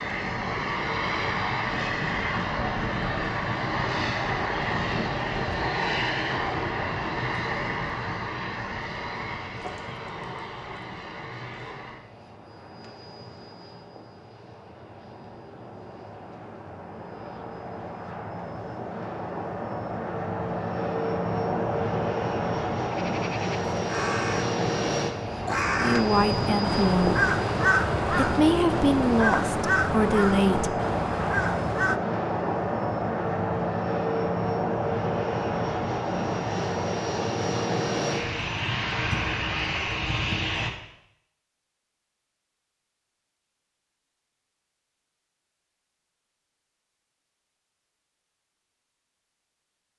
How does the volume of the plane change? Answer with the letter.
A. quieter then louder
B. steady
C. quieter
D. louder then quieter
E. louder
A.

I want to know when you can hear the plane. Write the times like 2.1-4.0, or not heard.
0.0-40.7.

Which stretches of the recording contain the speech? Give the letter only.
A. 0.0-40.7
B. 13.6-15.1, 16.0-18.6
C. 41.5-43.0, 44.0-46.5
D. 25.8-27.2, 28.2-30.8
D.